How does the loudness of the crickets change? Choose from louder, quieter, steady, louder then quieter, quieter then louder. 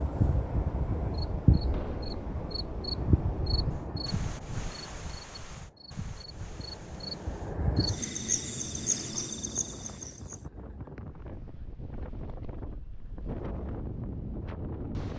quieter then louder.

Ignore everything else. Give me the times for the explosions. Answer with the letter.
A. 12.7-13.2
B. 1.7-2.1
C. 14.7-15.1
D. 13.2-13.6
B.